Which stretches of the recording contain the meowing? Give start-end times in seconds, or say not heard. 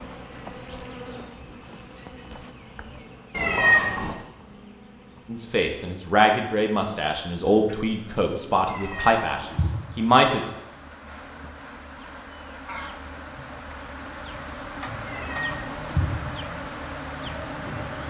3.3-4.2, 8.7-9.8, 15.1-16.1.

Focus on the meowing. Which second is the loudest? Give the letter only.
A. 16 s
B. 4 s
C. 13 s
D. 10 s
B.